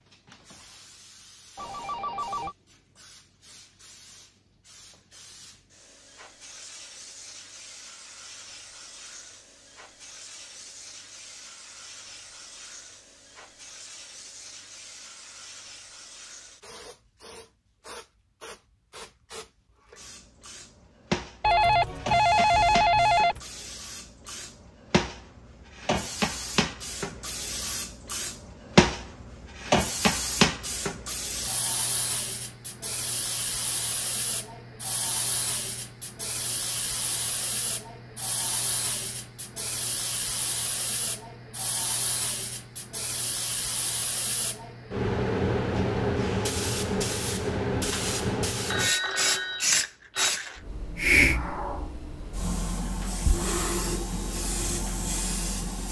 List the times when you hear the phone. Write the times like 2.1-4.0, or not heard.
1.6-2.5, 21.4-23.4, 48.7-50.4.